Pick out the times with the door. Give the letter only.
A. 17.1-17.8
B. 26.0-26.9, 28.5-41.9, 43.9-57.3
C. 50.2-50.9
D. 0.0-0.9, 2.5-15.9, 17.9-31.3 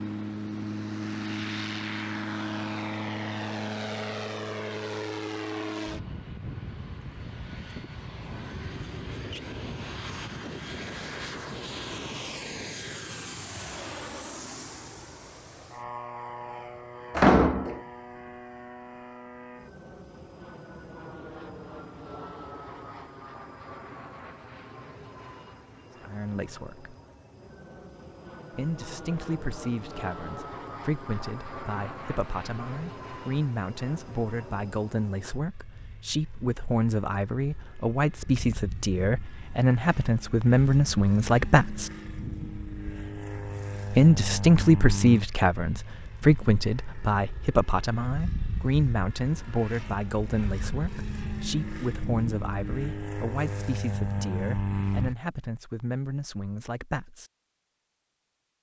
A.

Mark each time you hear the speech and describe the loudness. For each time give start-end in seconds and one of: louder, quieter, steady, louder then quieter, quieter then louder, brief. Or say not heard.
26.0-26.9 brief
28.5-41.9 louder
43.9-57.3 quieter.